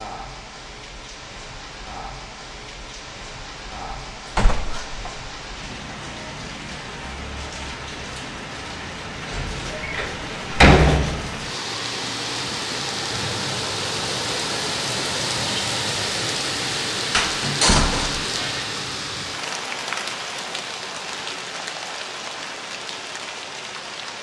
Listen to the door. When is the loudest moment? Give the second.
11 s.